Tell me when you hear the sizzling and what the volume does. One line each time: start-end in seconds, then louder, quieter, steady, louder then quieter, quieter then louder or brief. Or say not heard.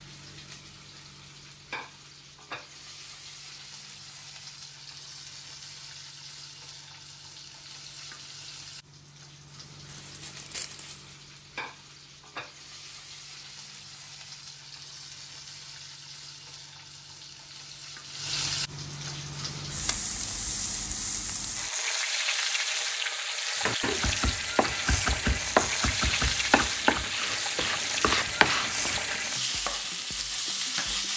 0.0-31.1 louder.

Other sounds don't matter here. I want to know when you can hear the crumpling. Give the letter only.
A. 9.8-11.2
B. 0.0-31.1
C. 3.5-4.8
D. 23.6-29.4
A.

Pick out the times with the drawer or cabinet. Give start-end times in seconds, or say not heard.
not heard.